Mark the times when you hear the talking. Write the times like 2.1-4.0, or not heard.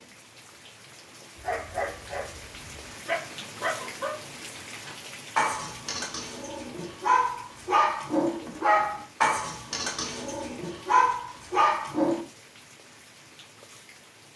not heard.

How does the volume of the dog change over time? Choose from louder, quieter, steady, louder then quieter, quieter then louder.
louder.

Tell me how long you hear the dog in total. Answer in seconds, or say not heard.
11 s.